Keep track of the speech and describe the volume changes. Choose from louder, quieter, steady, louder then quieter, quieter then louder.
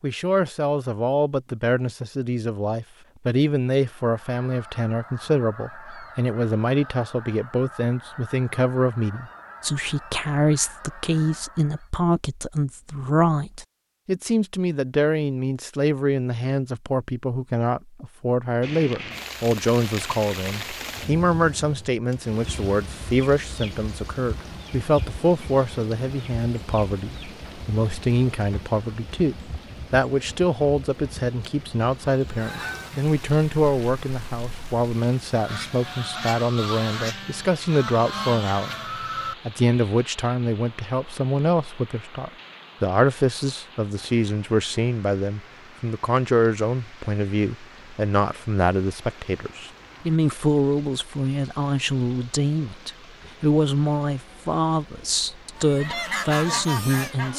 steady.